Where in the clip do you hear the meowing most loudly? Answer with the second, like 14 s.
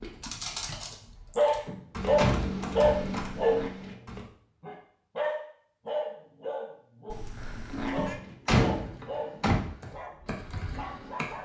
8 s.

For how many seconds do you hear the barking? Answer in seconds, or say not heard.
11 s.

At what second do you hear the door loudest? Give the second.
9 s.